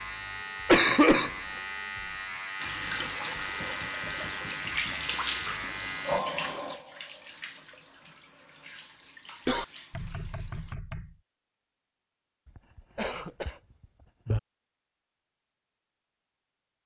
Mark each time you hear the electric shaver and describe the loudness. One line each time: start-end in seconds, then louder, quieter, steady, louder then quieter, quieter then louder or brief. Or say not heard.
0.0-6.2 steady.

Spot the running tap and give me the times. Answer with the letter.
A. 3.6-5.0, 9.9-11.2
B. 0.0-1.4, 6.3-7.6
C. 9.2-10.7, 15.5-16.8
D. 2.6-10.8
D.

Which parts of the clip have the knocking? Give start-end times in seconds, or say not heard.
3.6-5.0, 9.9-11.2.